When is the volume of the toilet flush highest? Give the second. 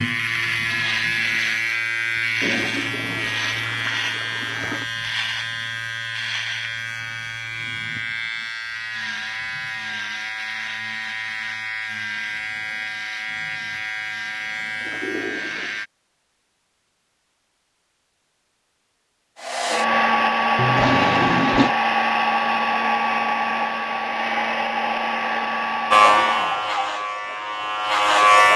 21 s.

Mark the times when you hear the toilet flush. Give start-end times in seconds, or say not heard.
2.4-4.8, 14.8-15.8, 20.6-21.8.